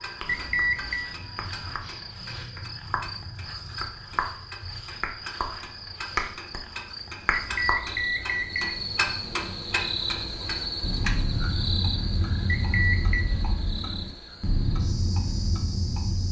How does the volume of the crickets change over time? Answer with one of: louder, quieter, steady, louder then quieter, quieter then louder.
louder then quieter.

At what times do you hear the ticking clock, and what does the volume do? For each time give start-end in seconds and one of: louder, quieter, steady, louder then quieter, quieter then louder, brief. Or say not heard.
0.0-16.2 louder.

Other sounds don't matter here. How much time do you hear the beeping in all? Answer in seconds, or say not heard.
3 s.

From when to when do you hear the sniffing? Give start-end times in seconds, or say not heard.
1.8-2.5.